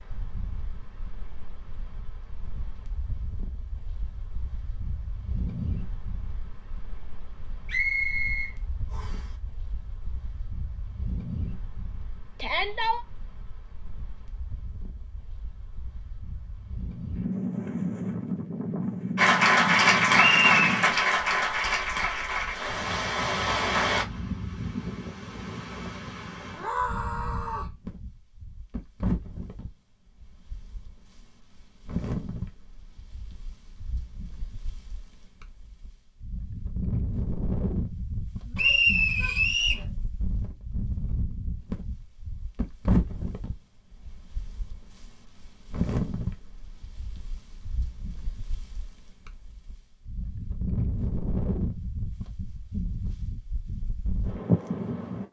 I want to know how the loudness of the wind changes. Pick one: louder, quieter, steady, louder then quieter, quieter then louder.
louder.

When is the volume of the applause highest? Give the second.
20 s.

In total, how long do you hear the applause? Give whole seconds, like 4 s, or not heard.
5 s.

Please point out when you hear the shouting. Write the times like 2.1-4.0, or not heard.
12.4-13.1, 26.6-27.8, 38.5-40.0.